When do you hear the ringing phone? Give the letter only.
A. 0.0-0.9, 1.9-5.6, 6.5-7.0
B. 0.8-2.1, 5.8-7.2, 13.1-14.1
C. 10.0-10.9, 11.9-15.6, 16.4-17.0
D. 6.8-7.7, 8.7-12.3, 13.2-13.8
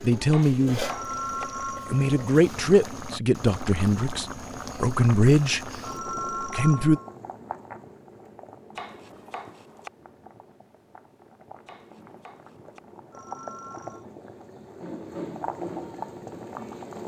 B.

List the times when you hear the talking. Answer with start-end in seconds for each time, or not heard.
0.0-0.9, 1.9-5.6, 6.5-7.0.